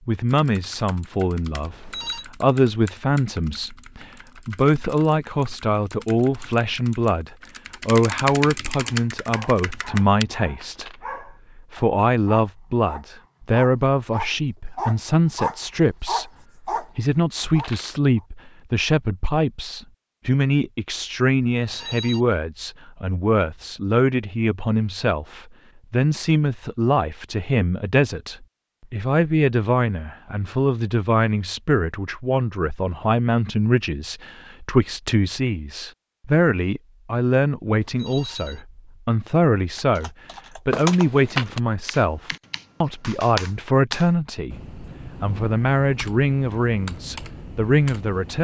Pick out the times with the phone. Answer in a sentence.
The phone can be heard from 1.6 to 2.2 s, from 21.6 to 22.2 s and from 37.9 to 38.6 s.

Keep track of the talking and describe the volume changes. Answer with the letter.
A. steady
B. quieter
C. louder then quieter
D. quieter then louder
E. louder
A.